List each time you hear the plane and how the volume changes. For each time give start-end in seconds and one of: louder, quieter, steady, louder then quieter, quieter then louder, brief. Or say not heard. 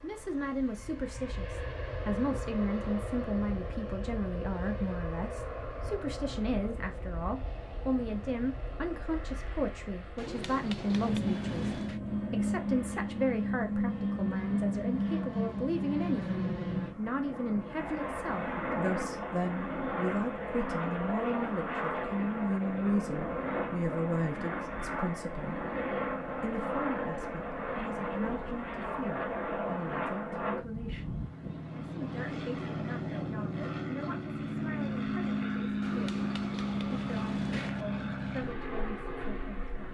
0.0-39.8 louder.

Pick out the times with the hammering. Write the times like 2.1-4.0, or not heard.
10.2-12.0, 35.8-37.9.